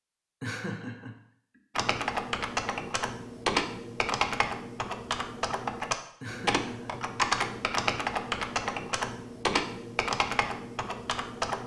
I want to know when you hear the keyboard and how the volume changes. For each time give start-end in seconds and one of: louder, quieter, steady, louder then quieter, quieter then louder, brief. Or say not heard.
1.8-11.6 steady.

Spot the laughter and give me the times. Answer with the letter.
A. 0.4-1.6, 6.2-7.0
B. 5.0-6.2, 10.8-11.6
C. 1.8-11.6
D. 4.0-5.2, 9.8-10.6
A.